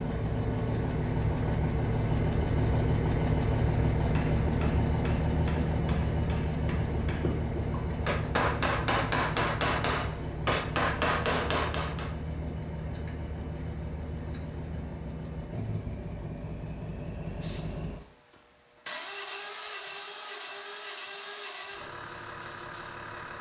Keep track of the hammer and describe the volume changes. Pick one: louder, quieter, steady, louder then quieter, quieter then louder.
louder.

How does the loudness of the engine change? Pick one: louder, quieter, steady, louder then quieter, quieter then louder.
quieter.